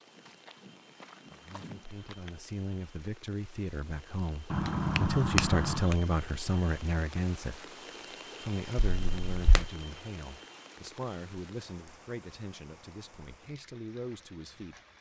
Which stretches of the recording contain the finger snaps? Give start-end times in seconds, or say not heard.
4.5-6.0, 9.0-9.7.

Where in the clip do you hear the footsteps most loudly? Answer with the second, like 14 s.
2 s.